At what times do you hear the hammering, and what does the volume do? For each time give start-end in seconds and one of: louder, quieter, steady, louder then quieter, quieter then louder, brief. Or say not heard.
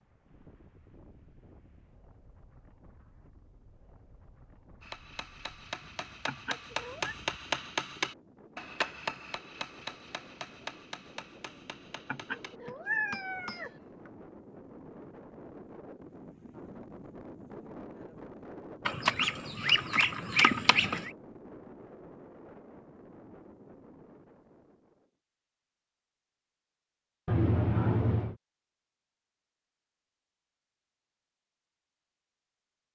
4.8-14.1 louder then quieter.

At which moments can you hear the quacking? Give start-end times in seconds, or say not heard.
18.9-21.1.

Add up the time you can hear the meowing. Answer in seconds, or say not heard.
4 s.